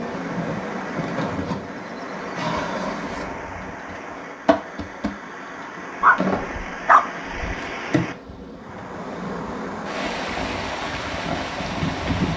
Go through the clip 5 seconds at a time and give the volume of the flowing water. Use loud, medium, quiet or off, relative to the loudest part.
medium, medium, loud.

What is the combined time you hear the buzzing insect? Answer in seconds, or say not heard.
12 s.